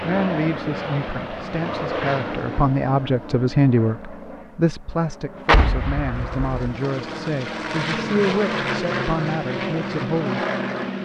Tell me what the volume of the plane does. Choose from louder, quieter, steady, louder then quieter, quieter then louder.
quieter then louder.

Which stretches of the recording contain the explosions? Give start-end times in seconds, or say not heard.
5.5-6.6.